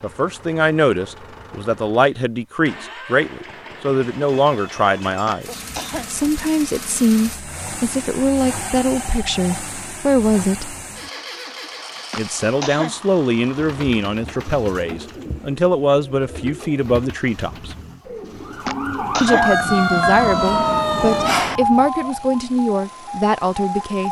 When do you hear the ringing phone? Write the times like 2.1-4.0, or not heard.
4.0-5.4, 8.8-9.6, 19.2-20.2.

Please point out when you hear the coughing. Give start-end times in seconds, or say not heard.
5.2-6.1, 12.1-12.9, 18.6-19.5.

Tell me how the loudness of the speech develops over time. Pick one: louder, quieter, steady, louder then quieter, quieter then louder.
steady.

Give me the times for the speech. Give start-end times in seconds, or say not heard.
0.0-10.8, 12.2-17.8, 19.2-24.0.